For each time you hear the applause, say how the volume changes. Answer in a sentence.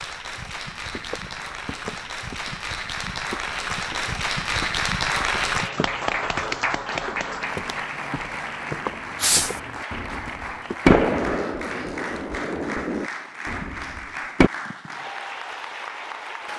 You can hear the applause from 0.0 to 16.5 s, getting louder then quieter.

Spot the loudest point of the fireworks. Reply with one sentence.
The volume of the fireworks peaks at 11 seconds.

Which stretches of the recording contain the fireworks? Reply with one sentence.
You can hear the fireworks from 9.2 to 14.5 s.